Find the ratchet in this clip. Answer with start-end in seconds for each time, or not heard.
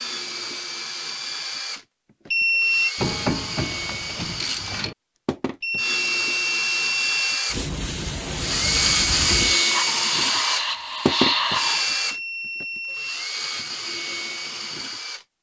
3.0-5.0.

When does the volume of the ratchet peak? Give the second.
3 s.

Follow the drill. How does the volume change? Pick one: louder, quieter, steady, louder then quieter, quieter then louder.
louder then quieter.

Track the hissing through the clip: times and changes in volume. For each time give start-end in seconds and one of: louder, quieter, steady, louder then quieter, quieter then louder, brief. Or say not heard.
7.5-11.8 louder.